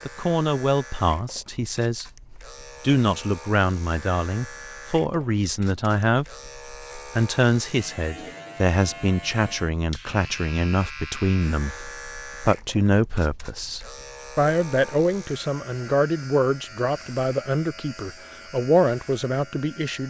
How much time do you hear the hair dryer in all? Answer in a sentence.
You can't hear the hair dryer here.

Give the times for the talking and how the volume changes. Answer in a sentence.
The talking can be heard briefly from 0.1 to 2.1 s; and from 2.8 to 20.0 s, at a steady volume.